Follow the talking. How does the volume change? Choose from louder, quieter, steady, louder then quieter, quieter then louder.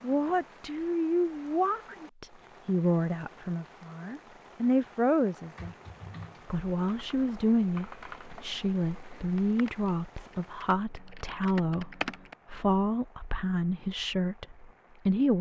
steady.